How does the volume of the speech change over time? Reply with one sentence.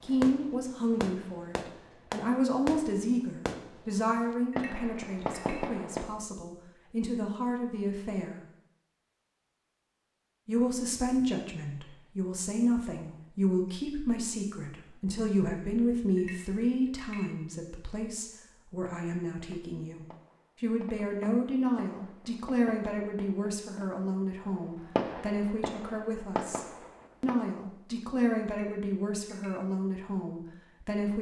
The volume of the speech stays about the same.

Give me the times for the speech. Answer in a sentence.
You can hear the speech from 0.0 to 8.4 s and from 10.4 to 31.1 s.